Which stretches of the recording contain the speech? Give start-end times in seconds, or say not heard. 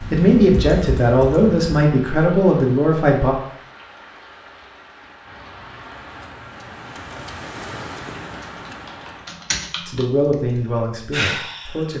0.0-3.4, 9.8-11.9.